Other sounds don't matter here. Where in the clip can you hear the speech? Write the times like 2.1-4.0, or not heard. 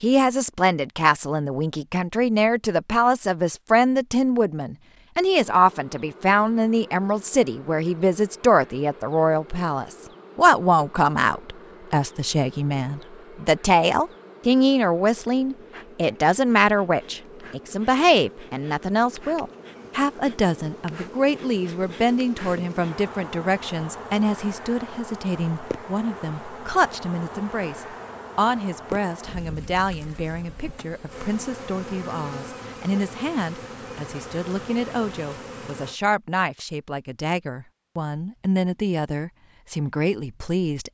0.0-40.8.